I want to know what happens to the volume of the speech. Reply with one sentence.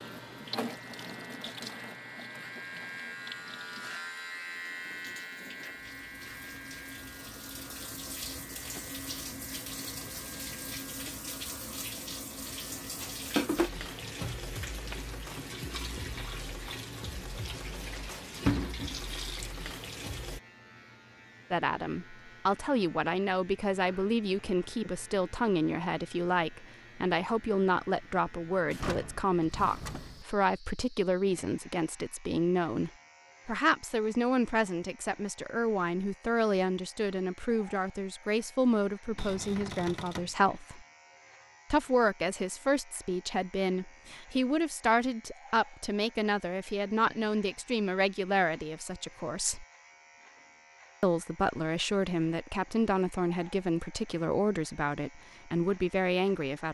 The volume of the speech stays about the same.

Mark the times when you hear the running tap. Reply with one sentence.
The running tap can be heard from 0.0 to 20.4 s.